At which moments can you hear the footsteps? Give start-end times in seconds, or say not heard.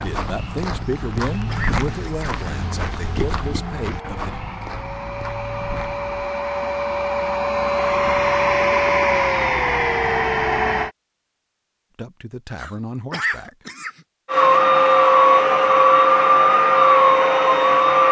0.0-6.2.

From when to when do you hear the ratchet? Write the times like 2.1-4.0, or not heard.
not heard.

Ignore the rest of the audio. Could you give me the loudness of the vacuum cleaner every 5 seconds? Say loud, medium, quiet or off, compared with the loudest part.
quiet, medium, loud, loud.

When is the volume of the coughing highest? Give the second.
13 s.